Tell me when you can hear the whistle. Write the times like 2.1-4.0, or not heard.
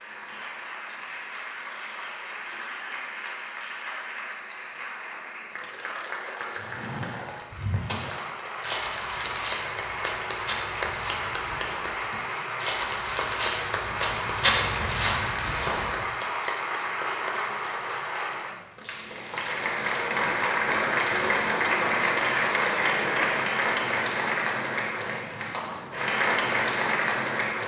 not heard.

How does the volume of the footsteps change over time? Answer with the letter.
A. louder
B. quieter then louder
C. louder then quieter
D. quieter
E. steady
B.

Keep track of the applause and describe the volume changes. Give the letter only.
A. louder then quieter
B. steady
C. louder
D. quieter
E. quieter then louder
C.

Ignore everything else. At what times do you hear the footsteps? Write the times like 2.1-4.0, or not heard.
7.5-16.0.